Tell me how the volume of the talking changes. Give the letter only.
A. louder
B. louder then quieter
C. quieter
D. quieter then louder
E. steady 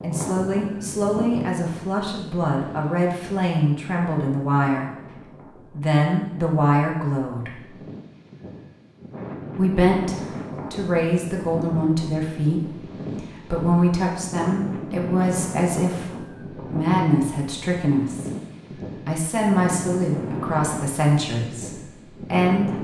E.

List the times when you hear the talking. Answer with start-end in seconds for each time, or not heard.
0.0-7.6, 9.6-22.7.